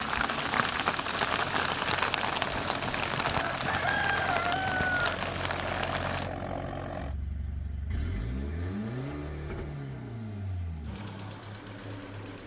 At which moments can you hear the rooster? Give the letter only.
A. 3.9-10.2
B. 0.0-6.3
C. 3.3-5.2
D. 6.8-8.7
C.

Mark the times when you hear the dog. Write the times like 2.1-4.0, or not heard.
not heard.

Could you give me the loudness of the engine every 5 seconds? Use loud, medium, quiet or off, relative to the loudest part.
loud, loud, medium.